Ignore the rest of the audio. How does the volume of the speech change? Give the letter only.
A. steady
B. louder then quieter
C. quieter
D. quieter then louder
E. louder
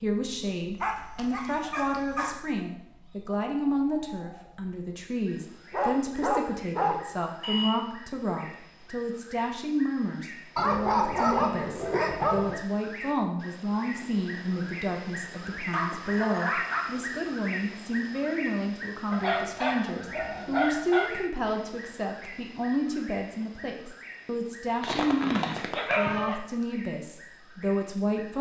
A.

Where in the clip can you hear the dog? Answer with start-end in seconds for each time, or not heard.
0.8-2.4, 5.7-7.7, 10.6-12.6, 15.7-16.9, 19.1-21.1, 24.8-26.4.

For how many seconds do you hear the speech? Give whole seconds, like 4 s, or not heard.
28 s.